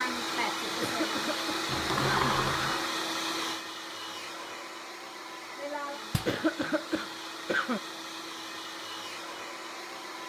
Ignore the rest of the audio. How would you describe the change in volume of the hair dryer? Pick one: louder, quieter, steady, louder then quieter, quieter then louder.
quieter.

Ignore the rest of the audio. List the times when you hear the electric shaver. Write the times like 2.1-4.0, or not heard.
not heard.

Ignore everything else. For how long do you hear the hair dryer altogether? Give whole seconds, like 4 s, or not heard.
10 s.